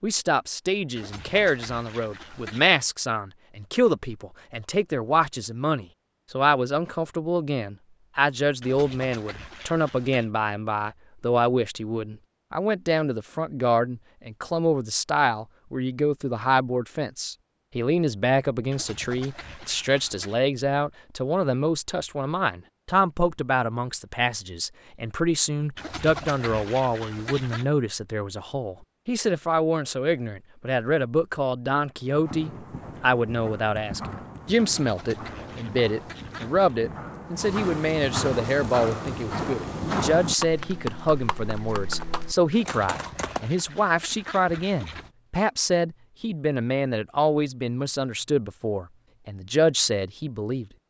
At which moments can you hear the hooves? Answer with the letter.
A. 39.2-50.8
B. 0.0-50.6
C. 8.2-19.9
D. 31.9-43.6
D.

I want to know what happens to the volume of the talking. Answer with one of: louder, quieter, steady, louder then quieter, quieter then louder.
steady.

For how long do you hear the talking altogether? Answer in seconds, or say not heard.
51 s.